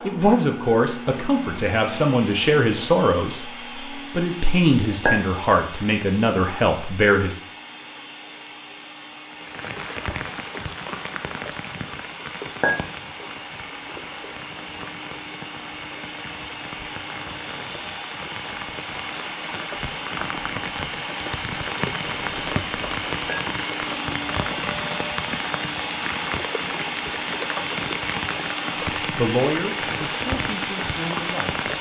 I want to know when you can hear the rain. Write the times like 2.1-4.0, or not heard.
9.3-31.7.